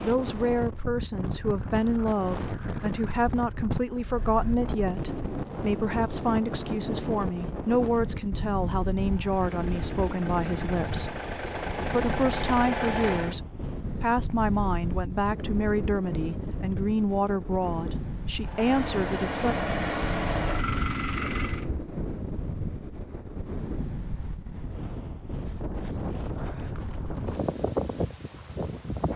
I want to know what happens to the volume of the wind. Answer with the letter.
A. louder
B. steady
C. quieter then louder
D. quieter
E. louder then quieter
B.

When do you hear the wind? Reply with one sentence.
You can hear the wind from 0.0 to 29.1 s.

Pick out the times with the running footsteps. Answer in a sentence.
You can't hear the running footsteps here.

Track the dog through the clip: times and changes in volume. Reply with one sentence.
You can't hear the dog here.